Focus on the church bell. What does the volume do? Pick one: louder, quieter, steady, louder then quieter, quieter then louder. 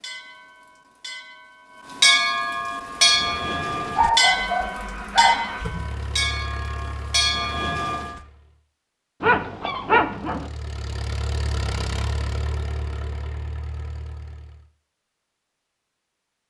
louder then quieter.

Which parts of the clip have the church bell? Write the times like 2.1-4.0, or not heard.
0.0-8.2.